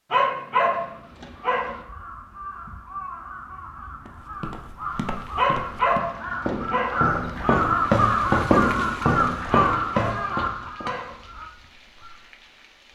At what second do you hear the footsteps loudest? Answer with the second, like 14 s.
8 s.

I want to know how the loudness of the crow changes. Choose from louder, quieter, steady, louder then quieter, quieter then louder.
louder then quieter.